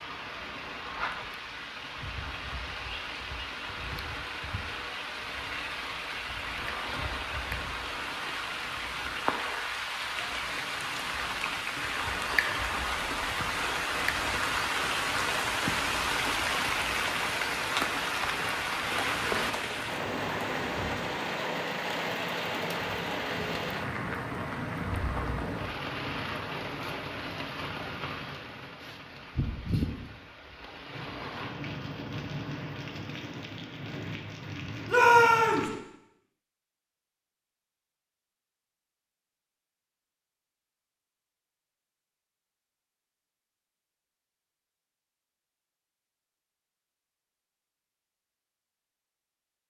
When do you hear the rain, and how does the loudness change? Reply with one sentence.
You can hear the rain from 0.0 to 35.8 s, getting louder then quieter.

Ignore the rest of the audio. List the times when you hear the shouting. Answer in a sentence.
The shouting can be heard from 34.9 to 35.7 s.